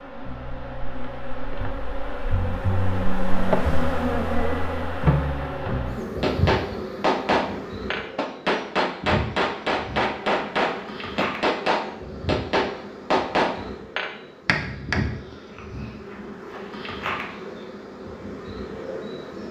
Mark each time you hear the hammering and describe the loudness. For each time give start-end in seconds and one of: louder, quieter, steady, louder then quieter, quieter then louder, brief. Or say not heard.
6.2-15.1 steady.